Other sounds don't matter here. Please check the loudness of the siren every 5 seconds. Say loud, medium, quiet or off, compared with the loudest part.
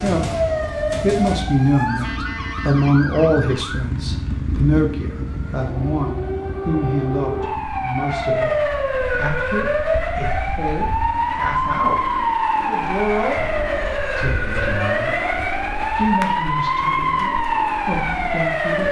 medium, loud, loud, loud.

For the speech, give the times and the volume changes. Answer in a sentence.
The speech can be heard from 0.0 to 15.2 s, getting quieter; and briefly from 15.9 to 18.8 s.